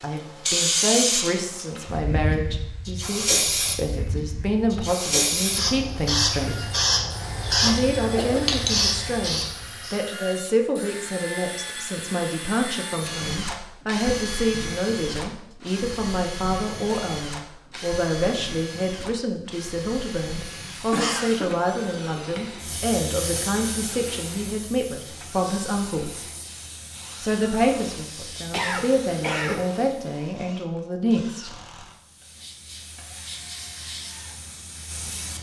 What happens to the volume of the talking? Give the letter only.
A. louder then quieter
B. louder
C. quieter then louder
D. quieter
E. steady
E.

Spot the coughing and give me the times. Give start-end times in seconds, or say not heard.
7.7-8.6, 20.9-21.5, 28.5-29.6.